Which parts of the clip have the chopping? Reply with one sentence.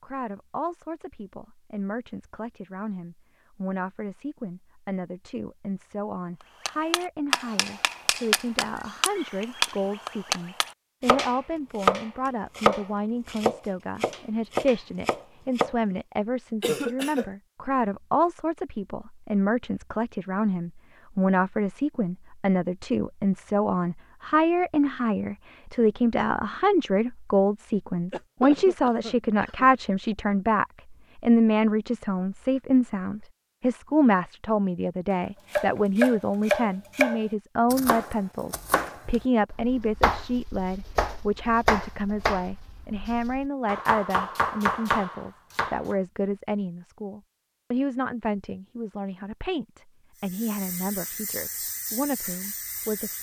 You can hear the chopping from 6.7 to 15.8 s and from 35.5 to 46.0 s.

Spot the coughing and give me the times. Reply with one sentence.
The coughing can be heard from 16.6 to 17.3 s and from 28.1 to 29.7 s.